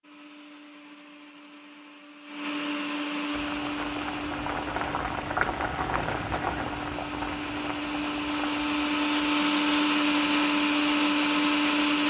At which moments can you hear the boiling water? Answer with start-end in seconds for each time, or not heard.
3.3-11.8.